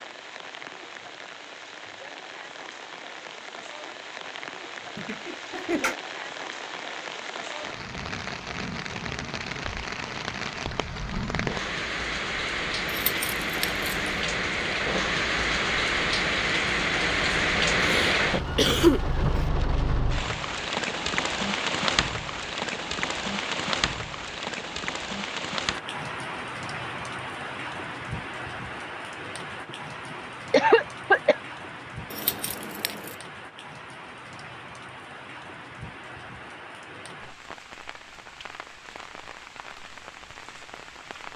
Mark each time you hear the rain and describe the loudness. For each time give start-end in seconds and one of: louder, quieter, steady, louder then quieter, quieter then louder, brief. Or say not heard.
0.0-41.3 louder then quieter.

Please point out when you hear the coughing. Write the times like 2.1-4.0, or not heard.
5.0-6.0, 17.8-19.4, 30.5-31.4.